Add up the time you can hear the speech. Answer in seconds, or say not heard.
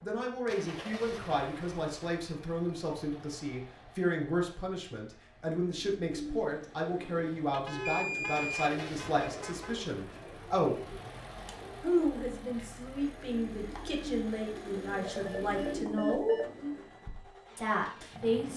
16 s.